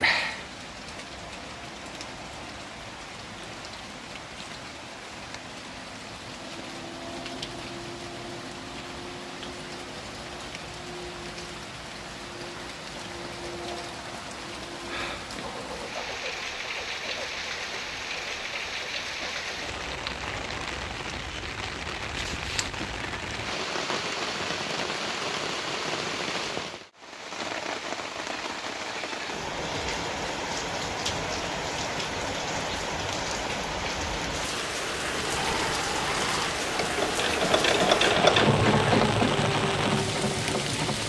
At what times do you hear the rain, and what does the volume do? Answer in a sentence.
You can hear the rain from 0.0 to 41.0 s, getting louder.